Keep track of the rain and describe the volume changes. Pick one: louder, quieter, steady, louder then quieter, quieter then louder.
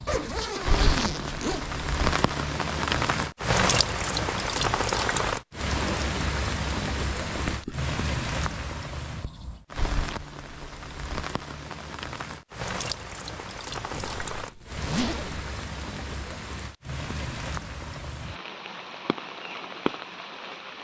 quieter.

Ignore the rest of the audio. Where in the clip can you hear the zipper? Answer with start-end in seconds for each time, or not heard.
0.1-1.6, 7.2-7.9, 13.9-15.4.